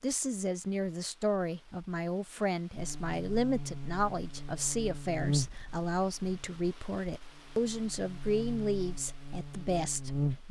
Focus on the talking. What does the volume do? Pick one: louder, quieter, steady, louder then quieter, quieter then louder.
steady.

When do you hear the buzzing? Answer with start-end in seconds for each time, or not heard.
2.8-10.4.